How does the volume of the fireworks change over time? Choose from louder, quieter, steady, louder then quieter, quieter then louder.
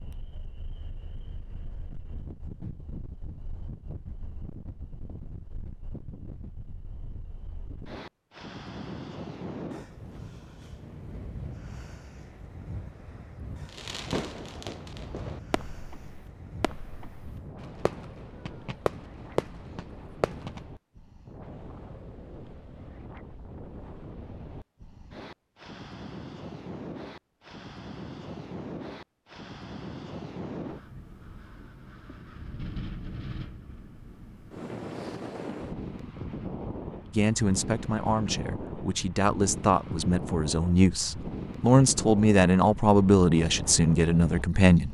quieter then louder.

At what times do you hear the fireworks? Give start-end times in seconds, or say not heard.
13.7-20.6.